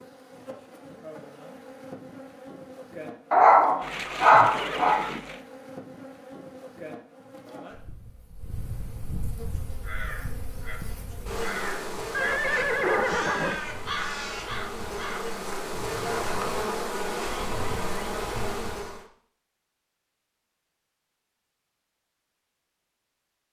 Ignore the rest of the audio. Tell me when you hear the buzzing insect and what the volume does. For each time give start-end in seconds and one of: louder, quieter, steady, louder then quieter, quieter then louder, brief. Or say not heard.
0.0-19.1 louder.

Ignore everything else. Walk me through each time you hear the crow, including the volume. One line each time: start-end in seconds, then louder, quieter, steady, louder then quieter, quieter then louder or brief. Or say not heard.
9.4-16.6 louder then quieter.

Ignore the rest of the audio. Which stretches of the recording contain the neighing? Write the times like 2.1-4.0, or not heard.
3.8-5.4, 12.1-13.6.